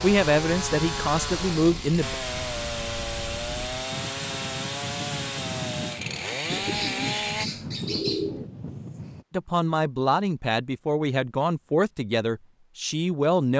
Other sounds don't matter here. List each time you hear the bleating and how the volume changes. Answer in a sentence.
The bleating can't be heard in this clip.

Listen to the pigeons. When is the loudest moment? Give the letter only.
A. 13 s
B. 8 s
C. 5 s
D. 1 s
B.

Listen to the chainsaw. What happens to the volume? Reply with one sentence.
The volume of the chainsaw stays about the same.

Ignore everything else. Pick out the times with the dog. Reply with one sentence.
The dog can't be heard in this clip.